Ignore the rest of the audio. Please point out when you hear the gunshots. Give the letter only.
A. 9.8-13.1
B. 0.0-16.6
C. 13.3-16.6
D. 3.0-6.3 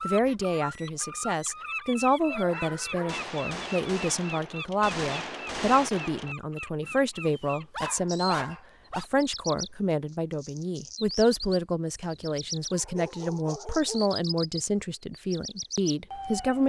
D.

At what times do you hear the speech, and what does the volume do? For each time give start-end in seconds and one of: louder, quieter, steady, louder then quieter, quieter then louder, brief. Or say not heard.
0.0-16.6 steady.